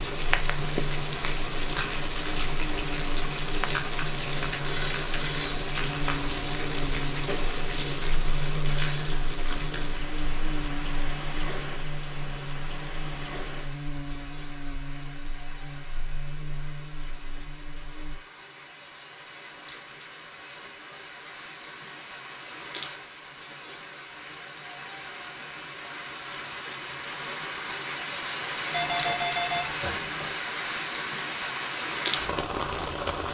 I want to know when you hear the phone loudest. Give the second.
29 s.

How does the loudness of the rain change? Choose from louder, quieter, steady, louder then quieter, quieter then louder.
quieter then louder.